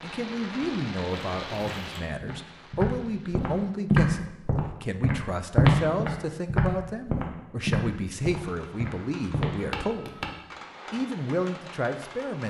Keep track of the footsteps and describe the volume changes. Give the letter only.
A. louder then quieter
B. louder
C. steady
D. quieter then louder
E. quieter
A.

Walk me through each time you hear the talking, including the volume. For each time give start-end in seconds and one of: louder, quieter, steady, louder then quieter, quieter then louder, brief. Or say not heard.
0.0-10.2 steady
10.9-12.4 brief.